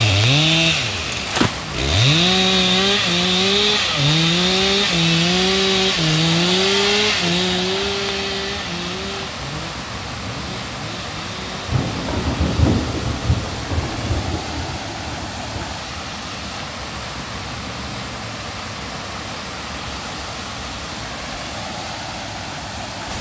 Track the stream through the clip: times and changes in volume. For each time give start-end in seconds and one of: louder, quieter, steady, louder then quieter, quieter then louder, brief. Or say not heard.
0.0-23.1 steady.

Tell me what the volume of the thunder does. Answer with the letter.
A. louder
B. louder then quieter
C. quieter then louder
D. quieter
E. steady
D.